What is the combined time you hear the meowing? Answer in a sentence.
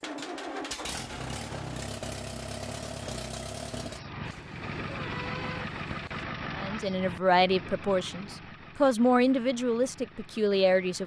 You can hear the meowing for 2 seconds altogether.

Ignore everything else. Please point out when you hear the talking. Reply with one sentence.
The talking can be heard from 6.5 to 11.0 s.